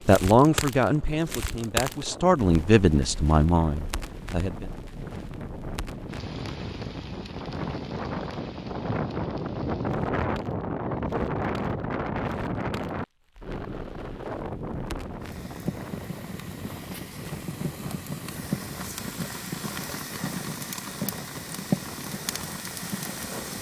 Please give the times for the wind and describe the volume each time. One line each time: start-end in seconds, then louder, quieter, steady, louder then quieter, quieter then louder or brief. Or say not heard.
0.0-23.5 louder then quieter.